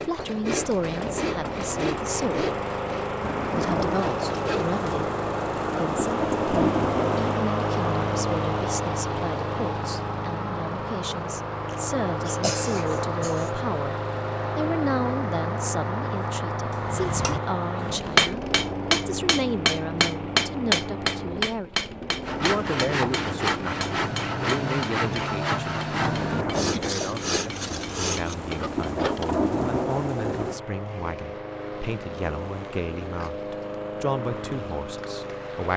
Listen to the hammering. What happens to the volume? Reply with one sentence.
The loudness of the hammering goes down.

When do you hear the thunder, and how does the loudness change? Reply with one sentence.
You can hear the thunder from 3.2 to 7.5 s, getting quieter then louder; and from 26.0 to 30.6 s, getting quieter then louder.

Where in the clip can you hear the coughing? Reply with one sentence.
The coughing can be heard from 11.7 to 13.5 s.